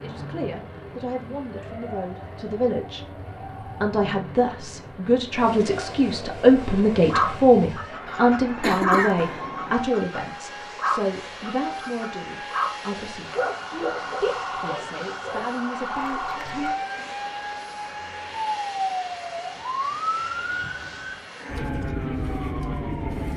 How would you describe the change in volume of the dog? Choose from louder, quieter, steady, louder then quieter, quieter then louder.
quieter.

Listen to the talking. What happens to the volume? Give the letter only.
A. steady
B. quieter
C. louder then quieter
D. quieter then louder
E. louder
C.